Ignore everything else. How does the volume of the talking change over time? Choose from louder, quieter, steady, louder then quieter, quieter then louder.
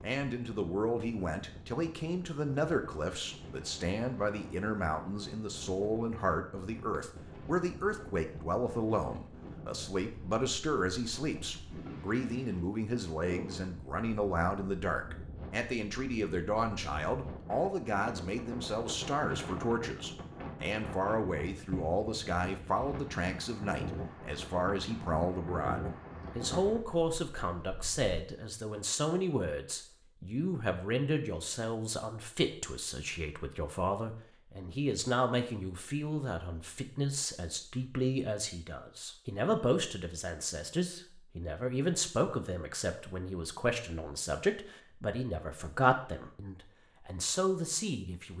steady.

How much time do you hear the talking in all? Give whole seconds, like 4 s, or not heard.
48 s.